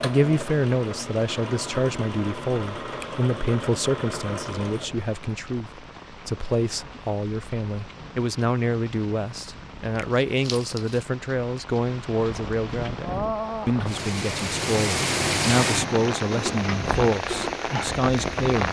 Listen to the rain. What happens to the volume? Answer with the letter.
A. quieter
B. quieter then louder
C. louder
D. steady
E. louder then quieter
C.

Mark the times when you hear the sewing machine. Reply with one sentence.
The sewing machine can be heard from 0.0 to 5.0 s.